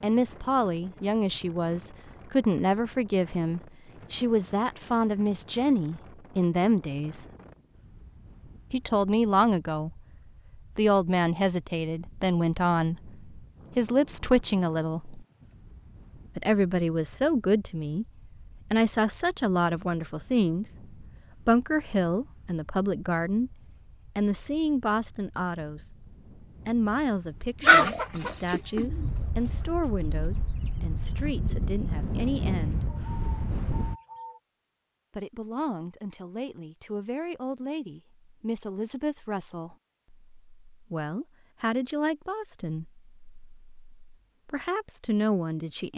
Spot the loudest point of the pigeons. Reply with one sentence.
The volume of the pigeons peaks at 28 seconds.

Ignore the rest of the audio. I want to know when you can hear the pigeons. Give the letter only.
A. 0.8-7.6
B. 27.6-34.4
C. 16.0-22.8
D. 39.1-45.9
B.